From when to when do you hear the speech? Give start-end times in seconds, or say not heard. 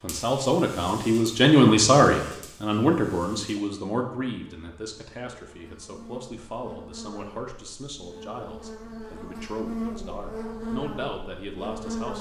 0.0-12.1.